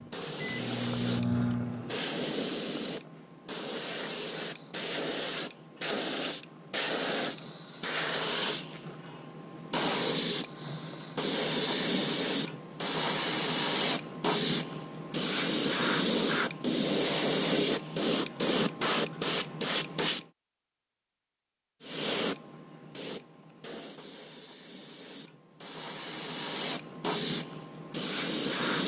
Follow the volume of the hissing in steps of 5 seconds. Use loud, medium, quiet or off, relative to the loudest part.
medium, medium, loud, loud, medium, medium.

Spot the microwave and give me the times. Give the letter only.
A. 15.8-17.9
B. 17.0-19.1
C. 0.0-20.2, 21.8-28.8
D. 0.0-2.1
D.